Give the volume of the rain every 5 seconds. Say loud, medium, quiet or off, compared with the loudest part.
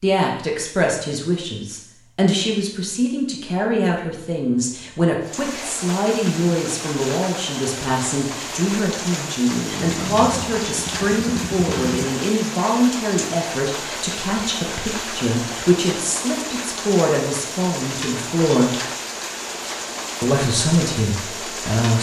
off, loud, loud, loud, loud.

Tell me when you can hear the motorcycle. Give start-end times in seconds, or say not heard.
9.4-12.1.